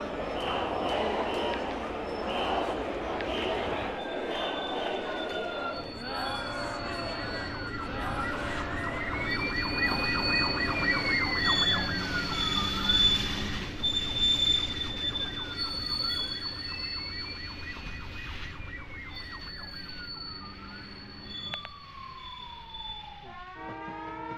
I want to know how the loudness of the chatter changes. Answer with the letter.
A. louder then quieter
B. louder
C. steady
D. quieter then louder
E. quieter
E.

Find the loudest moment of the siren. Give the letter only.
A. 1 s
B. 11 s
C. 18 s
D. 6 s
B.